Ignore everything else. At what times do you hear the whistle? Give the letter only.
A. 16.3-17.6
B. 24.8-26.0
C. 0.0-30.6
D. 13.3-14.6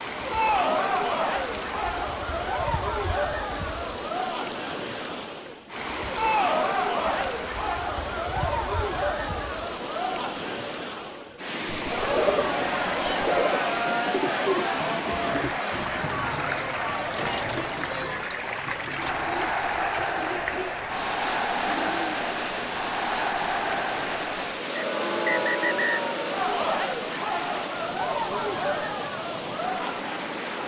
B.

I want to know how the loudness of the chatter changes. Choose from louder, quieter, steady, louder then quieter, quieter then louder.
steady.